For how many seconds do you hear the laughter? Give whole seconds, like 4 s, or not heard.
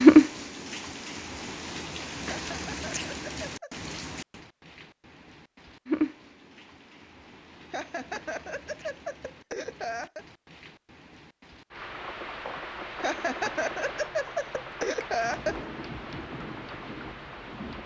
7 s.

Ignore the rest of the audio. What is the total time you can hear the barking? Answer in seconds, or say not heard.
not heard.